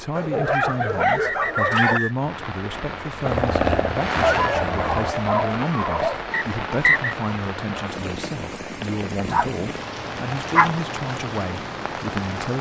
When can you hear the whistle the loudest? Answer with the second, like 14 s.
7 s.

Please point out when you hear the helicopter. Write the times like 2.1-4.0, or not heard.
3.2-5.2.